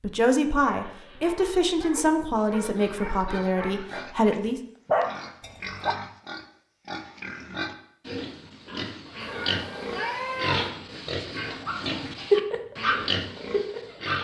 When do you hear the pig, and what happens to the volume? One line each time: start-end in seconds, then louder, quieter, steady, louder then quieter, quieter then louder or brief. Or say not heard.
2.5-14.2 louder.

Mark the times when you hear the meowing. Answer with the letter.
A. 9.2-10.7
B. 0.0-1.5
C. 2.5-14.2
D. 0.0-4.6
A.